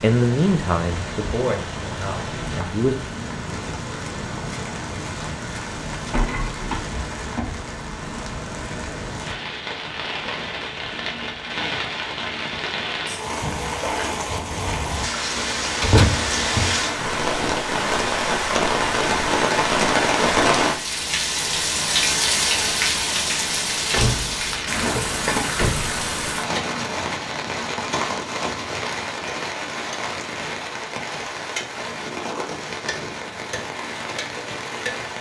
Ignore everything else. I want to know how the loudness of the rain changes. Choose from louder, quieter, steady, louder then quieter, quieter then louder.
louder then quieter.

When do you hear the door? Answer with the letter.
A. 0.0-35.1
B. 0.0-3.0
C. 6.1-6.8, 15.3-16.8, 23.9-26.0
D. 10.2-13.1
C.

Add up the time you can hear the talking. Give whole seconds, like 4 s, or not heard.
3 s.